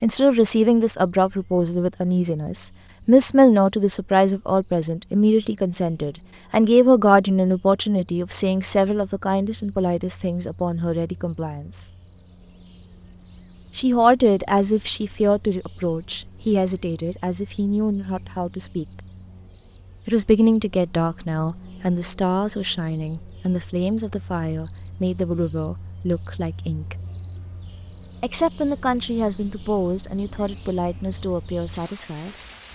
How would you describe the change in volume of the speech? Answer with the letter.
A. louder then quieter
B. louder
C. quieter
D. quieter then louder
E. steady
C.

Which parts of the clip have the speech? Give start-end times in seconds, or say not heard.
0.0-11.8, 13.8-18.9, 20.1-26.9, 28.2-32.4.